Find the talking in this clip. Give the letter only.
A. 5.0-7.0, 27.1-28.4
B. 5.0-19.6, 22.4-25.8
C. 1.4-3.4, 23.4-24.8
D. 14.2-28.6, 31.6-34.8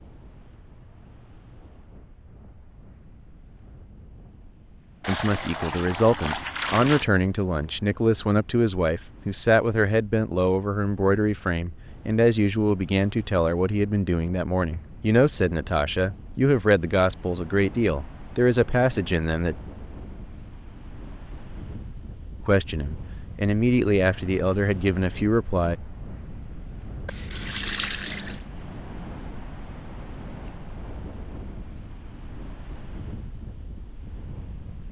B.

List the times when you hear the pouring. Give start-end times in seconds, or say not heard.
5.0-7.0, 27.1-28.4.